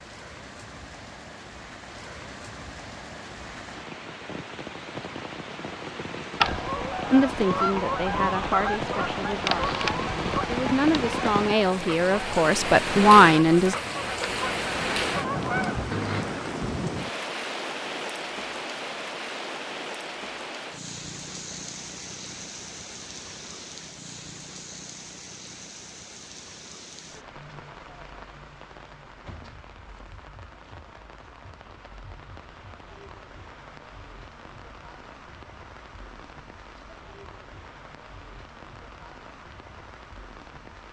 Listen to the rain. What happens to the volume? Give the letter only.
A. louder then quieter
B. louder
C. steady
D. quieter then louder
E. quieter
A.